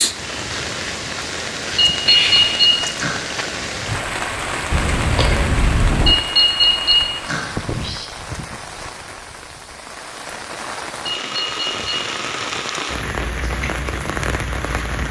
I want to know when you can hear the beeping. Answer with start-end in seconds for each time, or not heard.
1.8-3.2, 6.0-8.1, 11.1-12.0.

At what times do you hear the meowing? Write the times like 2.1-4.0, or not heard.
4.7-6.2.